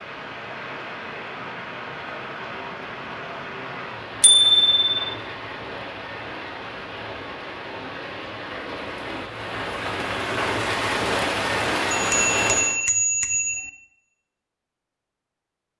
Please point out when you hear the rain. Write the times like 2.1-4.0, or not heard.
0.0-12.8.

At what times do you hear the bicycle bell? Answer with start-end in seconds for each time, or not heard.
4.2-5.1, 11.9-13.7.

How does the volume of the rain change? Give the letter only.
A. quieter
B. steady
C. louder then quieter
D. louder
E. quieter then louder
D.